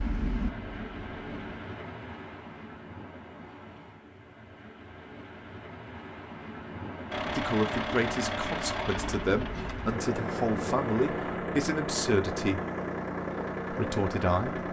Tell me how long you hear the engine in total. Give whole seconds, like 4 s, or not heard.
9 s.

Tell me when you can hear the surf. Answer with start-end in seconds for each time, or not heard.
0.0-11.4.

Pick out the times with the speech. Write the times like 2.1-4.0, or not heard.
7.3-12.6, 13.7-14.6.